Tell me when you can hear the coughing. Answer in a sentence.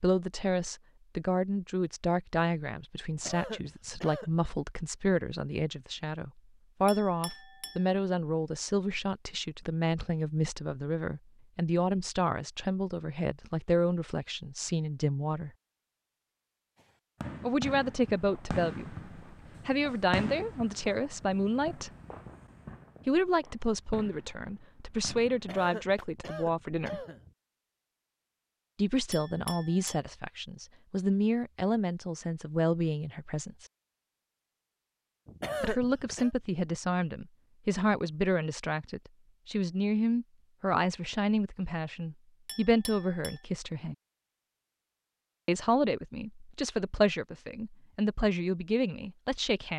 You can hear the coughing from 3.1 to 4.4 s, from 25.3 to 27.4 s and from 35.2 to 36.3 s.